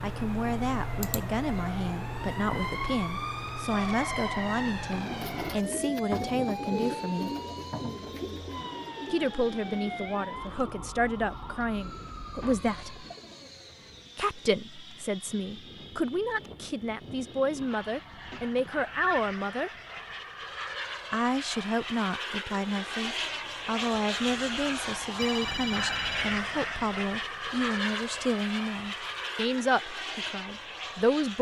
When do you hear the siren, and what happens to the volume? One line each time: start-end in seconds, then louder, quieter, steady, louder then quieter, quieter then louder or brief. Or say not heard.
0.0-13.0 quieter.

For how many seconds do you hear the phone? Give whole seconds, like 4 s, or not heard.
4 s.